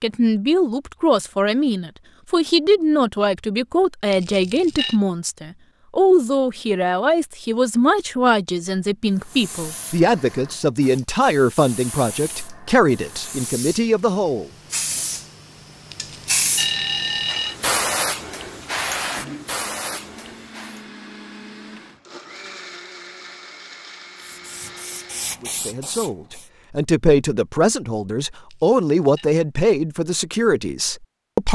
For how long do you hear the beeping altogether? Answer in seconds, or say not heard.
3 s.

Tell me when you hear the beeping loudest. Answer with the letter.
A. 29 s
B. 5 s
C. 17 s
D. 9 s
C.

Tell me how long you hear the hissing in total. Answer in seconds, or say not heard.
14 s.